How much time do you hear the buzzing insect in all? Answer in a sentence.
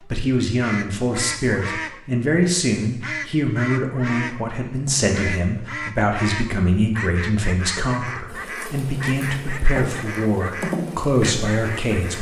The buzzing insect can be heard for 4 seconds in total.